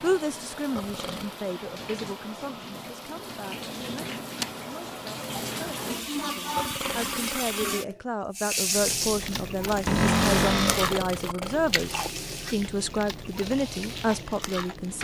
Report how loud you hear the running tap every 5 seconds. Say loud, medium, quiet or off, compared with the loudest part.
medium, loud, medium.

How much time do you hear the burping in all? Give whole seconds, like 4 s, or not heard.
3 s.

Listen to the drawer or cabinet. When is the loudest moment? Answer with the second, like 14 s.
10 s.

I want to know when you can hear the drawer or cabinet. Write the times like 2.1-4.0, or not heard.
3.8-4.5, 9.8-10.9.